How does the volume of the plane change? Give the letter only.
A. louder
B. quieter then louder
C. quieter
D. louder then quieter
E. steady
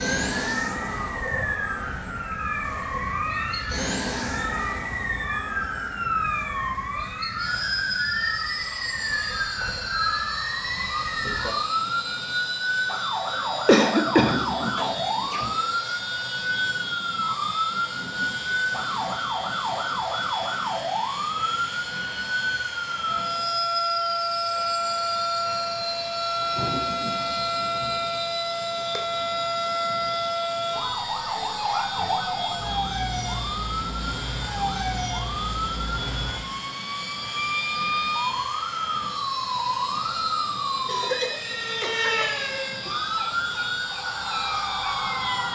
E.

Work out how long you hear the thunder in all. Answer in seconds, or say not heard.
3 s.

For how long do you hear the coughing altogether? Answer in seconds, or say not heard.
4 s.